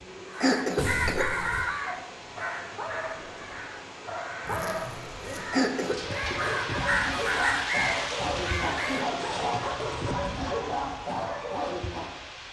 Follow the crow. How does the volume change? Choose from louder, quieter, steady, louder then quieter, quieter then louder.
quieter then louder.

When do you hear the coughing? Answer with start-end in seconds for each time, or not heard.
0.4-1.4, 5.5-6.0, 8.8-9.8.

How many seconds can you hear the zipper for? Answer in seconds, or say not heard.
3 s.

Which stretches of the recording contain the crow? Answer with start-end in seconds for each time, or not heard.
0.2-9.1.